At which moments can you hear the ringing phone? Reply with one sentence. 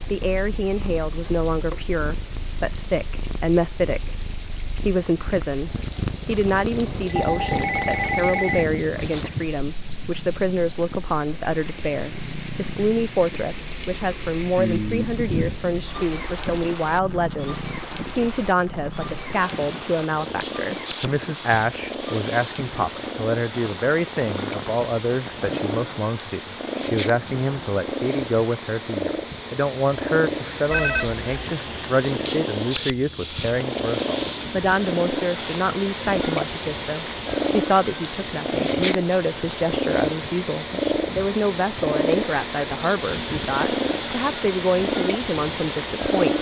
The ringing phone can be heard from 6.7 to 8.7 s and from 30.7 to 31.2 s.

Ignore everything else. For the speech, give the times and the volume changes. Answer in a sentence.
The speech can be heard from 0.1 to 46.3 s, at a steady volume.